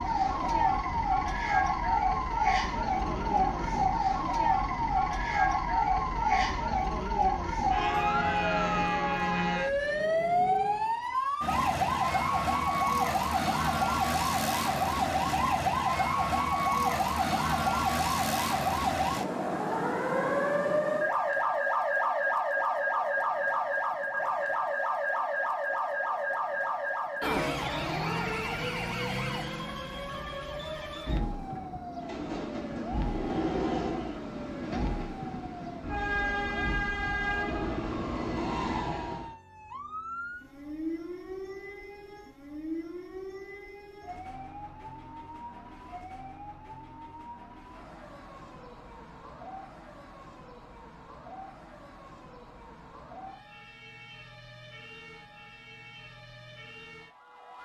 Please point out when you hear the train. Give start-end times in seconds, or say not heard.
0.0-11.0, 31.9-39.4.